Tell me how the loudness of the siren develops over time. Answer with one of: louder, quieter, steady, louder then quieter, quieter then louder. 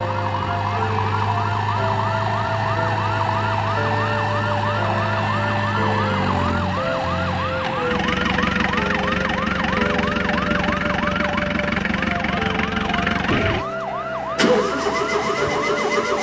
steady.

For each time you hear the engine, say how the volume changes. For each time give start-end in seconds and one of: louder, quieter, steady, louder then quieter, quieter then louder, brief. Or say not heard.
0.0-16.1 steady.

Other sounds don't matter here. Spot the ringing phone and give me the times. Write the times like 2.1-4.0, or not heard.
not heard.